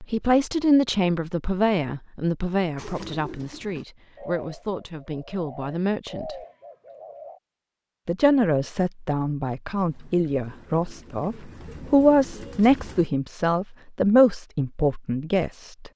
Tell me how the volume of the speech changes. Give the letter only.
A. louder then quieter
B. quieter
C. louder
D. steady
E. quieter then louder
E.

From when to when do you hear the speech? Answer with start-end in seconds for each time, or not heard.
0.0-6.3, 8.1-15.9.